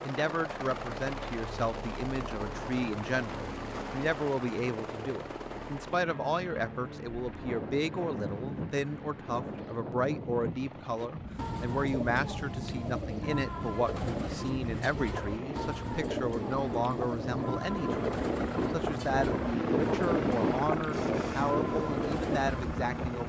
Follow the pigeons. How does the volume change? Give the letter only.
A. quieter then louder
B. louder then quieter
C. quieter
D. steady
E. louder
D.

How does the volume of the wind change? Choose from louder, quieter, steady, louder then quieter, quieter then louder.
louder.